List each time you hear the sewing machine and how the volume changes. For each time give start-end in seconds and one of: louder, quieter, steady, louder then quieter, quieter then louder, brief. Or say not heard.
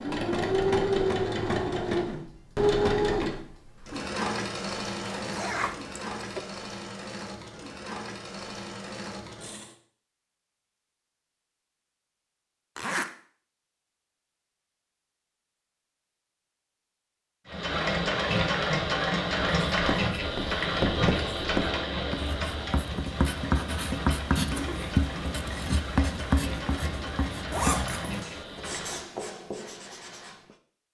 0.0-9.8 quieter
17.4-29.1 quieter.